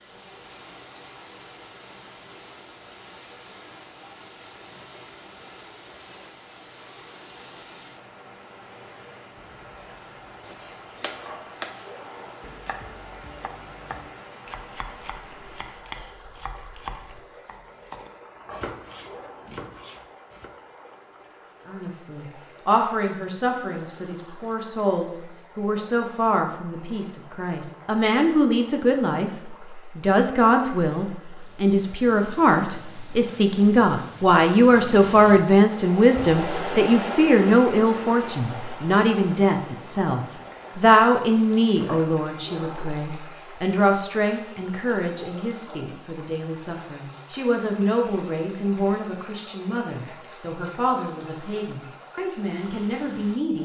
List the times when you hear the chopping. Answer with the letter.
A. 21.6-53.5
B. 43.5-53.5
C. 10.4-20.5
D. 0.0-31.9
C.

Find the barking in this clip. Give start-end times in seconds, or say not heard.
not heard.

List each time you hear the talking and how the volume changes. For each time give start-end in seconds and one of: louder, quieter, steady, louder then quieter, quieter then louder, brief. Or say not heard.
21.6-53.5 louder then quieter.